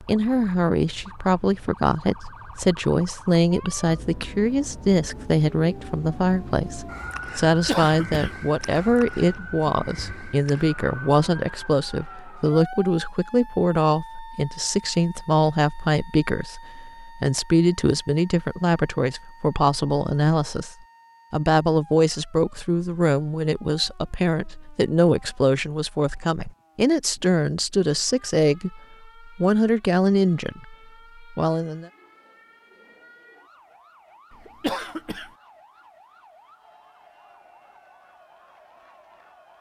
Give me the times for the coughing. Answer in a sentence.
The coughing can be heard from 7.5 to 8.3 s and from 34.3 to 35.3 s.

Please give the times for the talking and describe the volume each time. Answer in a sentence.
You can hear the talking from 0.0 to 31.9 s, at a steady volume.